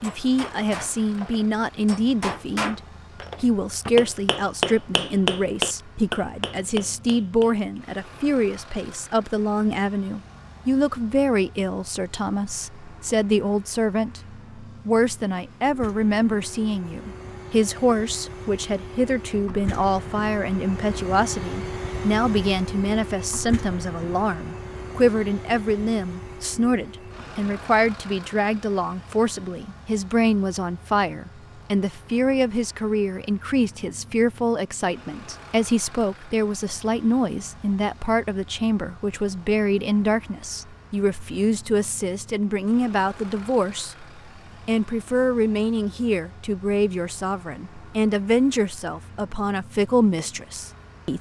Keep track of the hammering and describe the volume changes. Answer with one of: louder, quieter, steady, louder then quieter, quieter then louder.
louder then quieter.